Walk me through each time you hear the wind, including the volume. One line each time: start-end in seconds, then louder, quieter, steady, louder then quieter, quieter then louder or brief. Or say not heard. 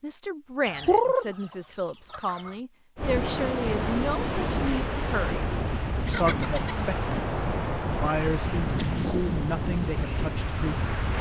3.0-11.1 steady.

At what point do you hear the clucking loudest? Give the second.
1 s.